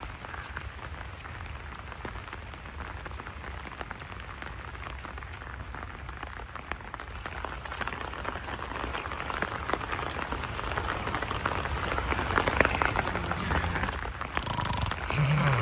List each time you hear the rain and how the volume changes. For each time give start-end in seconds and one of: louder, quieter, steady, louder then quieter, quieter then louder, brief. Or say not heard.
0.0-15.5 louder.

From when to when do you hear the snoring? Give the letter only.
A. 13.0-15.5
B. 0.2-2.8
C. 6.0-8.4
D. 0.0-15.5
A.